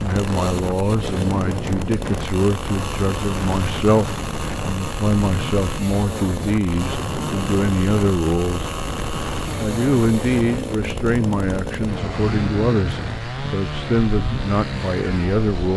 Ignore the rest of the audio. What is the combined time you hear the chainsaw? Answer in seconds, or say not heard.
16 s.